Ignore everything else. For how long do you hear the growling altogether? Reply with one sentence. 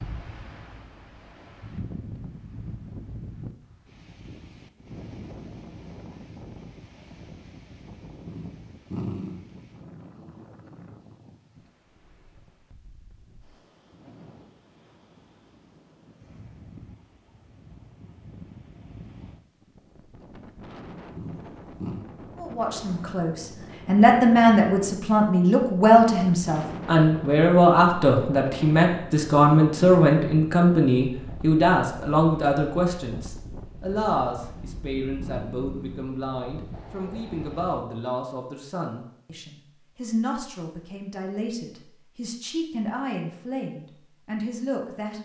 The growling can be heard for 4 seconds in total.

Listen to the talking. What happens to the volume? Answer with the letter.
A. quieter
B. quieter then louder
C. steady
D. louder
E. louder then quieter
A.